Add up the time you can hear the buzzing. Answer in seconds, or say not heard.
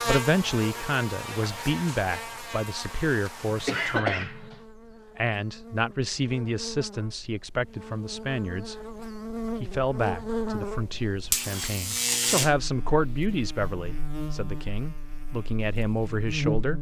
17 s.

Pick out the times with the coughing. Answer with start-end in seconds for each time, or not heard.
3.5-4.6.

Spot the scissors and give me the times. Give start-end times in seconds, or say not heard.
not heard.